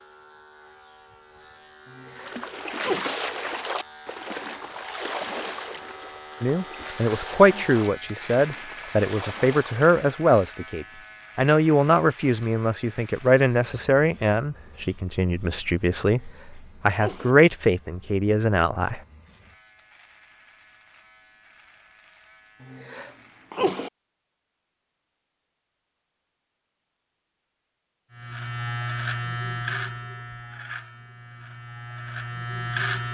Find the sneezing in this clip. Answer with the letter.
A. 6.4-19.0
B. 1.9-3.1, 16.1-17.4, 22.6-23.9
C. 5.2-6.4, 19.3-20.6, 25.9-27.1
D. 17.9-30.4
B.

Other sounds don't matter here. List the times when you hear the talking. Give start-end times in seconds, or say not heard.
6.4-19.0.